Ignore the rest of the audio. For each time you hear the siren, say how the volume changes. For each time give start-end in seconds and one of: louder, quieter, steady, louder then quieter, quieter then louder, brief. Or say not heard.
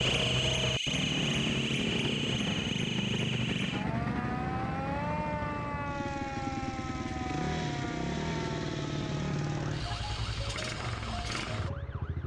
0.0-12.2 quieter.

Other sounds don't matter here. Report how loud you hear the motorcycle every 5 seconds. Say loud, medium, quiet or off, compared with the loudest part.
loud, loud, medium.